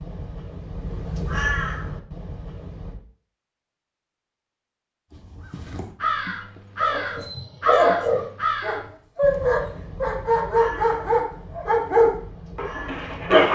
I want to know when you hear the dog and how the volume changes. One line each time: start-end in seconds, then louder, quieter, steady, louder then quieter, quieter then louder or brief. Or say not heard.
6.8-13.5 steady.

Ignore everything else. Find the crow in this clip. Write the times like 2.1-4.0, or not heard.
0.0-3.0, 5.1-13.3.